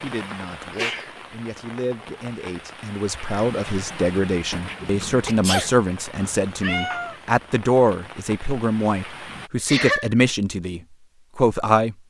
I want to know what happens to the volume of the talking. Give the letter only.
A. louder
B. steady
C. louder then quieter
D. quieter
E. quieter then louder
A.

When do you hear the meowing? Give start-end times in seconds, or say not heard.
6.2-7.2.